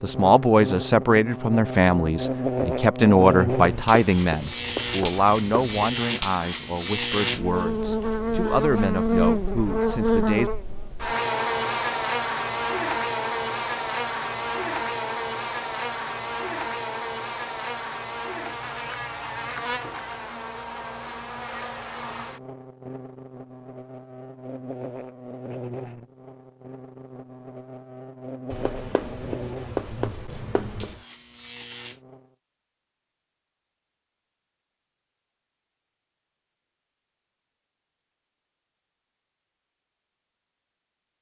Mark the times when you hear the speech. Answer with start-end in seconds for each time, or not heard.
0.0-10.5.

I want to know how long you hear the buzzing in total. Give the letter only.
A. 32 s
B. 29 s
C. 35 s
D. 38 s
A.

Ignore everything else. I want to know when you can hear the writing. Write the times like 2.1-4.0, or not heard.
3.5-5.8, 28.5-31.0.